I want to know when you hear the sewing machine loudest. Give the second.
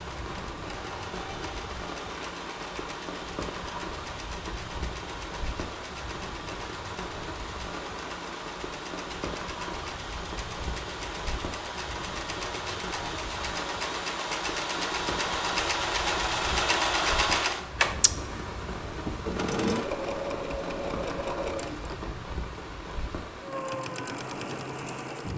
17 s.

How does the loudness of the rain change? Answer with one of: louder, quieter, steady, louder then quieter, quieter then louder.
steady.